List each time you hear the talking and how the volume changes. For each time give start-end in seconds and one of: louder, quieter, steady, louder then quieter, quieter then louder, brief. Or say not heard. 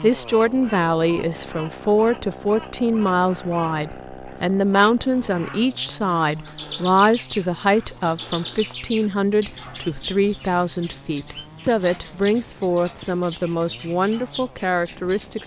0.0-15.4 steady.